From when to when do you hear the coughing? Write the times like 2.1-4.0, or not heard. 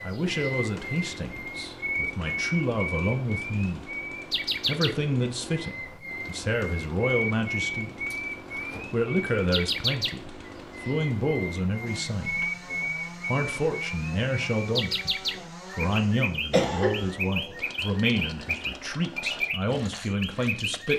8.1-8.9, 16.5-17.1.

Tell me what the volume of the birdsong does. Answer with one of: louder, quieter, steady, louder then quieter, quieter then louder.
steady.